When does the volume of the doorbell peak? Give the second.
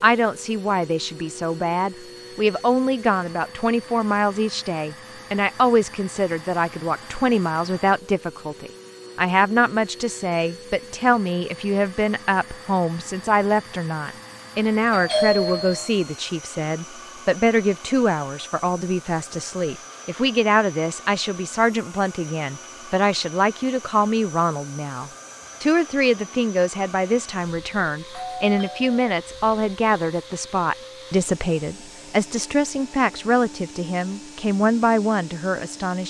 15 s.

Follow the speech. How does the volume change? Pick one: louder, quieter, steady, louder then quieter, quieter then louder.
steady.